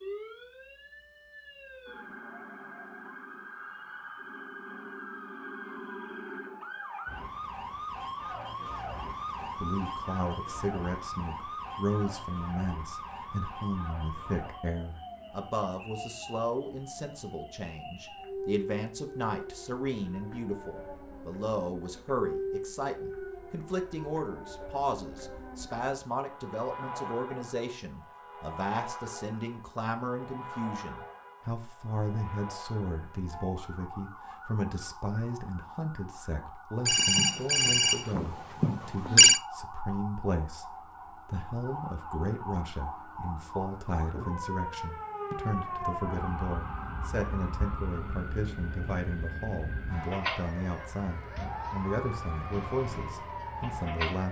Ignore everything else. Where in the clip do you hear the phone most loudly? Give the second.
39 s.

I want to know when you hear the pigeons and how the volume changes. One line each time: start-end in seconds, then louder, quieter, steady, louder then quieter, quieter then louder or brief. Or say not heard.
not heard.